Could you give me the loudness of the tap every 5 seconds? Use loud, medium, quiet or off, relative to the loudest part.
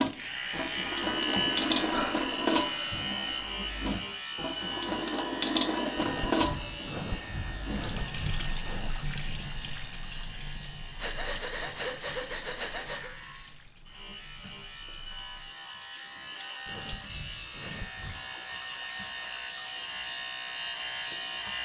loud, loud, quiet, quiet, quiet.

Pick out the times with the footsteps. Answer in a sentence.
The footsteps can't be heard in this clip.